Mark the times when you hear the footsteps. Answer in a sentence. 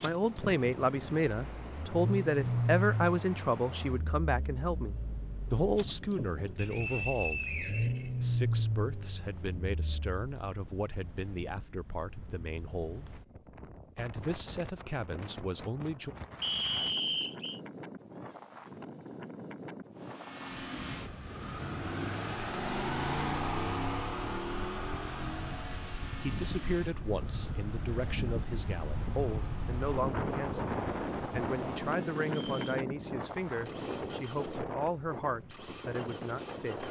The footsteps can't be heard in this clip.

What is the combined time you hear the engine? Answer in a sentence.
The engine can be heard for 27 seconds in total.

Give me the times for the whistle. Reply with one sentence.
You can hear the whistle from 6.5 to 8.6 s, from 16.4 to 17.6 s and from 32.2 to 32.8 s.